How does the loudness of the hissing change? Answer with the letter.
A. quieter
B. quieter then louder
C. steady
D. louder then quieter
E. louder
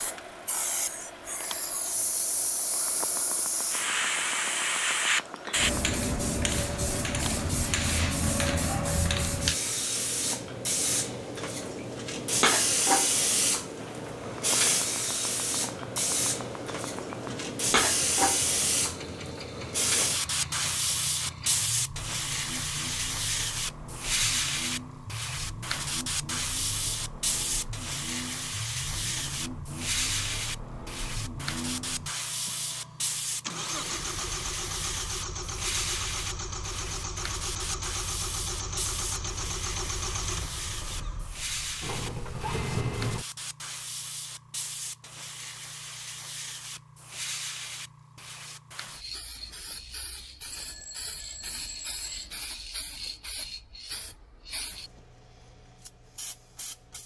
A.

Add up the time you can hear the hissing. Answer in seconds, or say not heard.
57 s.